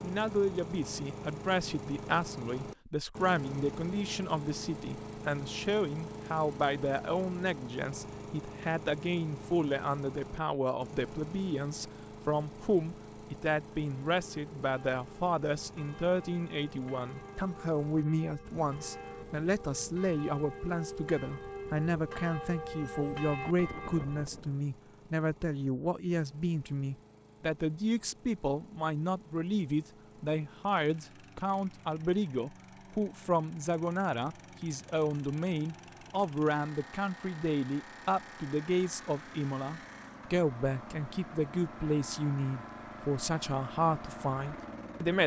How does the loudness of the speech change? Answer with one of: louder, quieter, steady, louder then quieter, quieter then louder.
steady.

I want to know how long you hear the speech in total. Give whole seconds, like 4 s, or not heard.
45 s.